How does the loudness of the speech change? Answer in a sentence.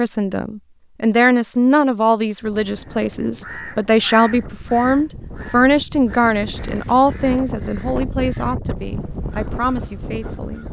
The loudness of the speech goes down.